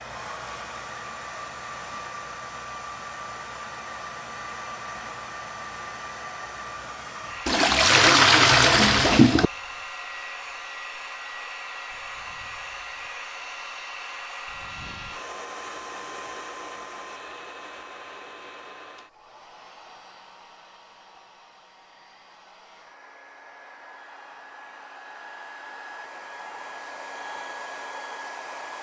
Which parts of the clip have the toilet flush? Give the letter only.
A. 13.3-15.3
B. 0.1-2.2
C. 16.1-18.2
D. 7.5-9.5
D.